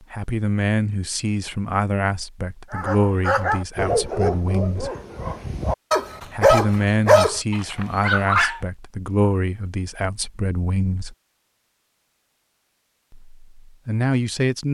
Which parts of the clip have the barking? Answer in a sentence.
The barking can be heard from 2.7 to 8.6 s.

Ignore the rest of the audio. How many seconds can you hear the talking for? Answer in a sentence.
You can hear the talking for 11 seconds altogether.